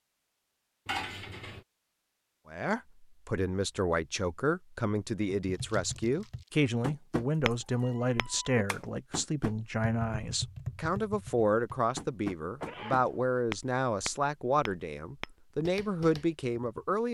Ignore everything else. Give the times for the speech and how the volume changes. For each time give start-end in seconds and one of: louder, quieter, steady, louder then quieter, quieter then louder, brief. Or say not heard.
2.5-17.0 steady.